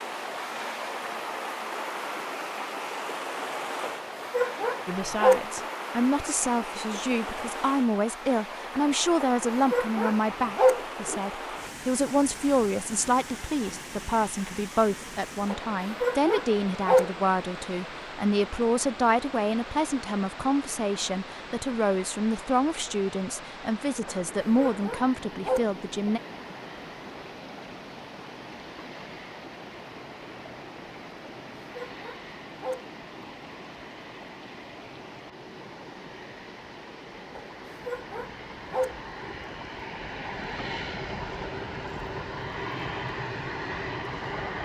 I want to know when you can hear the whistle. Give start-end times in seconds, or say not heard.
not heard.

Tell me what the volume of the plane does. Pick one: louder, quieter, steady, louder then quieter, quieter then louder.
louder.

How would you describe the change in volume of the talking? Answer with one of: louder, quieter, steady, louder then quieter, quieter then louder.
steady.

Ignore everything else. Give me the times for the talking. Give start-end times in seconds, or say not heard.
4.8-26.2.